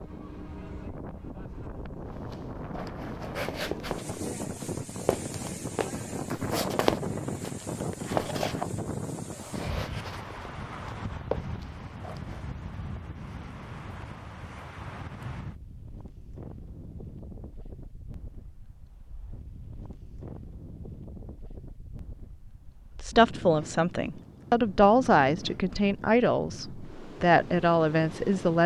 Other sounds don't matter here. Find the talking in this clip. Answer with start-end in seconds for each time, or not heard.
23.0-28.6.